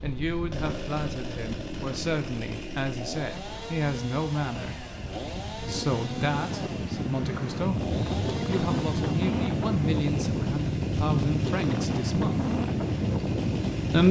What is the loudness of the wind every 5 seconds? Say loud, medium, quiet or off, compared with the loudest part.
quiet, loud, loud.